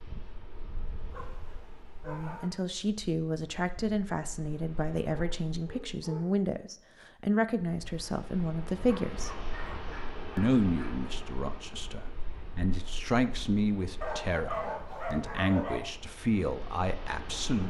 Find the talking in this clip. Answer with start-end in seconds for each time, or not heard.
2.0-9.3, 10.3-17.6.